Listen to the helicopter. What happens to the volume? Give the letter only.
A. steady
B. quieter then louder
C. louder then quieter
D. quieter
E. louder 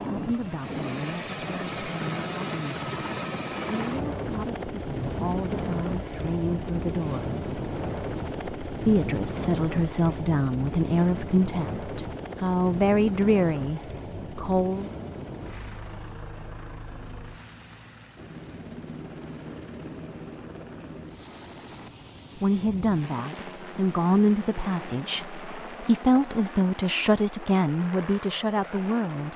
D.